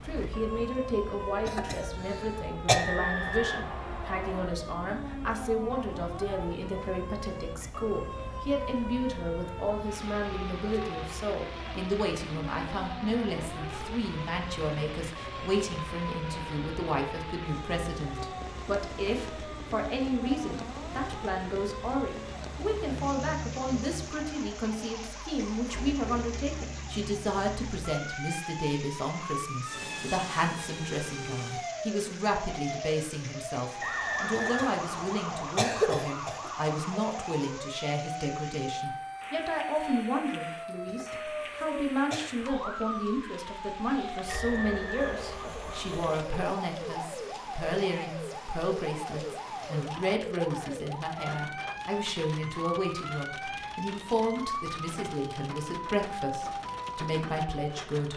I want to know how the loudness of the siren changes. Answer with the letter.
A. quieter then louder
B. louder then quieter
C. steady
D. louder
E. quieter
C.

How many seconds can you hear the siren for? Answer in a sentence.
You can hear the siren for 58 seconds altogether.